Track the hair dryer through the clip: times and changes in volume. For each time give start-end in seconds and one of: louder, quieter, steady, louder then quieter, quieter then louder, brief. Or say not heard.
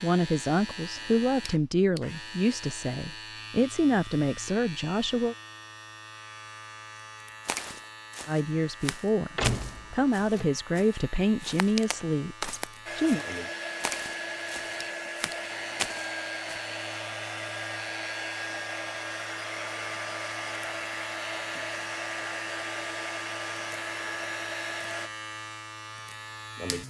12.8-25.1 steady.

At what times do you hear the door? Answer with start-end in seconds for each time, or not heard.
9.3-10.4.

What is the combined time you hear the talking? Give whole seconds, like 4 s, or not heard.
10 s.